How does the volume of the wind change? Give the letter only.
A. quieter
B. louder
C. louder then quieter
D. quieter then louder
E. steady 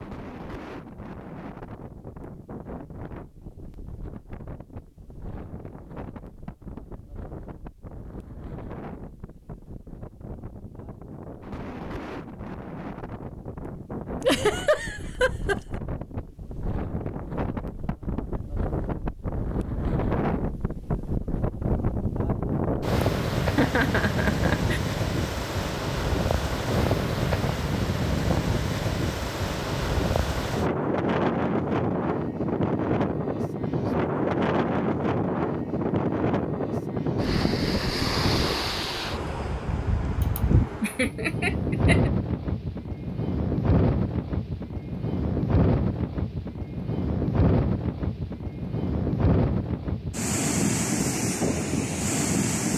B.